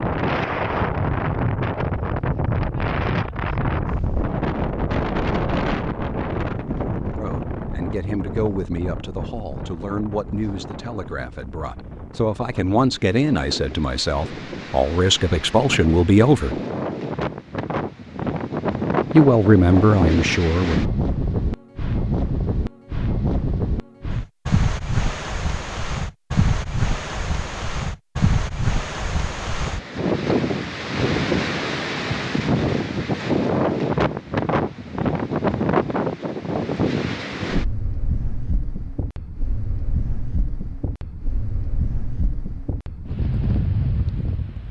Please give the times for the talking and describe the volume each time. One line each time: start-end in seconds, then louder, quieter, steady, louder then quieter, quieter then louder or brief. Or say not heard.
7.2-16.6 louder
19.1-20.9 brief.